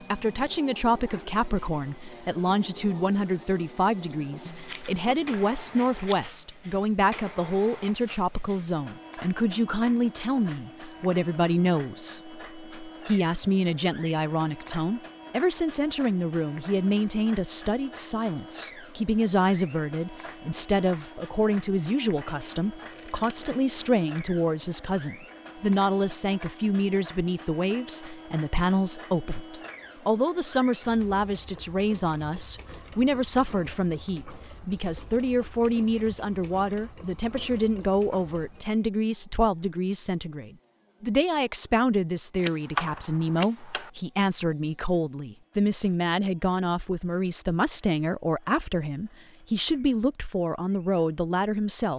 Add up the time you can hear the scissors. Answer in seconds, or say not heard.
5 s.